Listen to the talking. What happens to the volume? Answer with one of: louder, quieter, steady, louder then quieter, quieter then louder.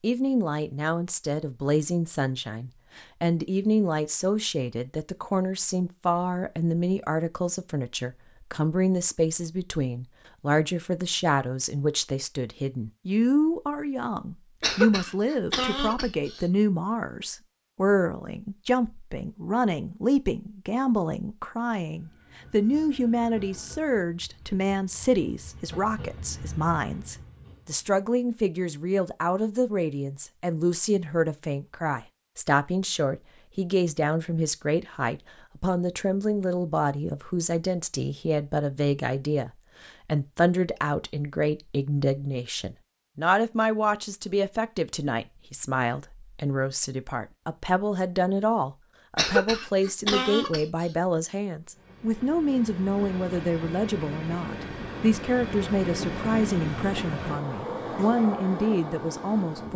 steady.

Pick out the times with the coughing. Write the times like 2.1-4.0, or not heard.
14.6-16.4, 49.1-50.9.